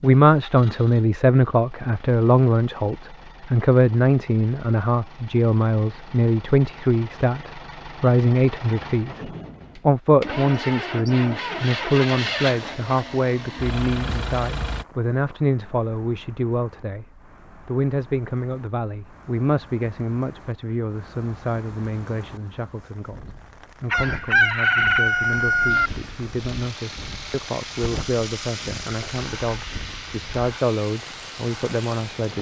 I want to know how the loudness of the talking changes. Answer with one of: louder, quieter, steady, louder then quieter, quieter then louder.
quieter.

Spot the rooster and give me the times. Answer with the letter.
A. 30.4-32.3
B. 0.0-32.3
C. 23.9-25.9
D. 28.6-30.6
C.